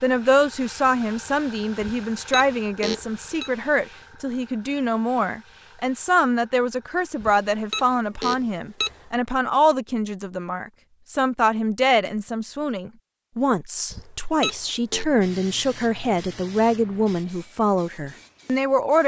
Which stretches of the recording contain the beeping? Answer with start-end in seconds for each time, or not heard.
1.8-3.5, 7.2-9.1, 13.9-15.1.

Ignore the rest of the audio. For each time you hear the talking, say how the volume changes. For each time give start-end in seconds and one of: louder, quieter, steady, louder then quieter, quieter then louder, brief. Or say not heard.
0.0-19.0 steady.